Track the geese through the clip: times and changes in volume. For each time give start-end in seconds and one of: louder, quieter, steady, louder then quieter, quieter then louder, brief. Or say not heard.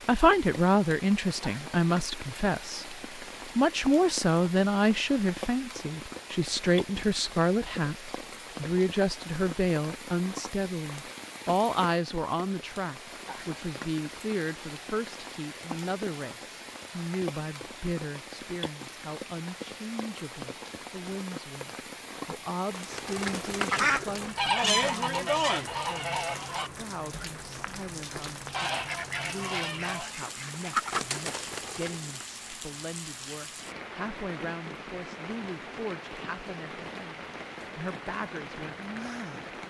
22.6-32.2 quieter then louder.